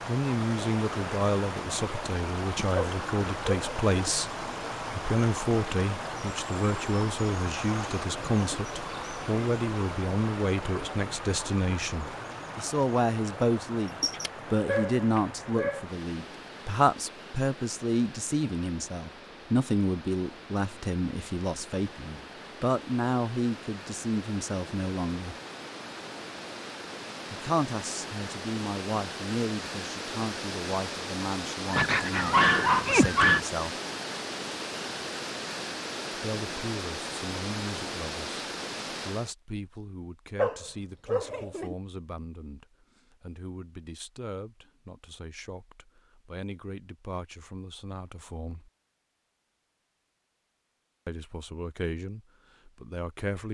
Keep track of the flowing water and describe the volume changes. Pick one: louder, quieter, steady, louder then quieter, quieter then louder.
quieter then louder.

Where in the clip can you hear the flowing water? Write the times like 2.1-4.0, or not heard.
0.0-39.4.